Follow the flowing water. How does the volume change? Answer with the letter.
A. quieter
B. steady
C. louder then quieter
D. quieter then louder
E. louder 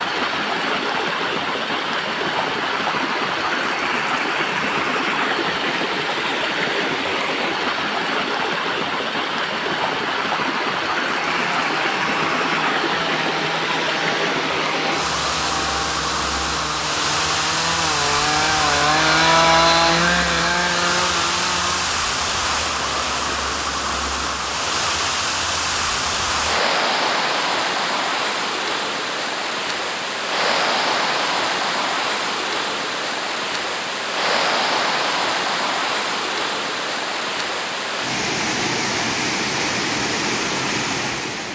B.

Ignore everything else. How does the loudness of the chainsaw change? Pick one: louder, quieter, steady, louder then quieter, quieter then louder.
louder.